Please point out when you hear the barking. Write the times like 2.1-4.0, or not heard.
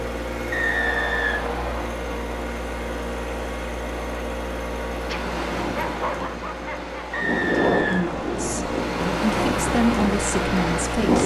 5.1-7.3.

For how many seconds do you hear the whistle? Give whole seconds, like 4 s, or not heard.
3 s.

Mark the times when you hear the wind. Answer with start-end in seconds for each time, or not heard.
4.9-11.2.